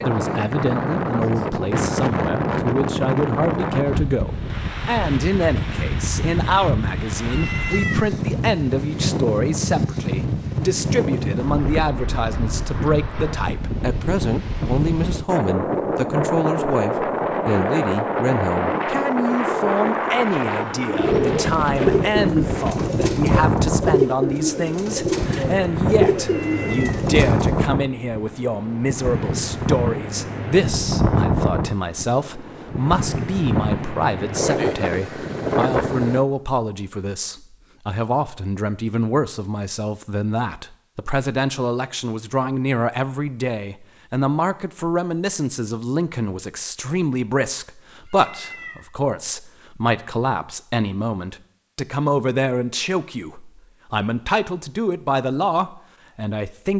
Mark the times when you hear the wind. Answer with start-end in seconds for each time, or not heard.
0.0-36.2.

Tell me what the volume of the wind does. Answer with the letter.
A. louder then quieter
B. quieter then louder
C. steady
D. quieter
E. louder
C.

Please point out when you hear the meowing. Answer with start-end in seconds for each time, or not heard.
7.2-8.1, 26.2-27.1, 48.0-48.9.